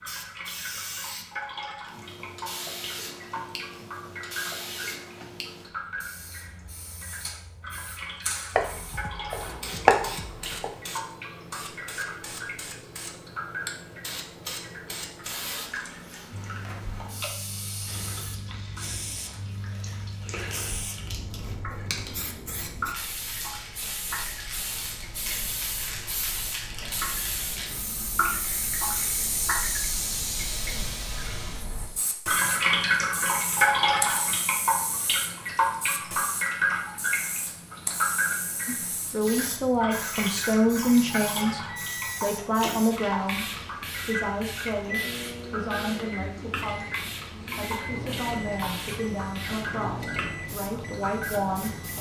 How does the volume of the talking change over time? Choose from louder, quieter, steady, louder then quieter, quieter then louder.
quieter.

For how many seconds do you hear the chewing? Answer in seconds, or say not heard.
not heard.